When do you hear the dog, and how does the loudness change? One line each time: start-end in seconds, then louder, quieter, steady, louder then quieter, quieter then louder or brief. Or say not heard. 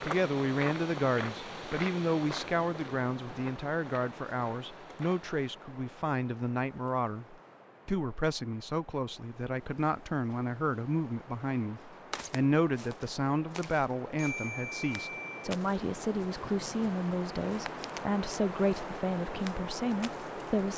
not heard.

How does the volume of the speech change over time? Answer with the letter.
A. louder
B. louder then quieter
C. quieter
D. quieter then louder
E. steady
E.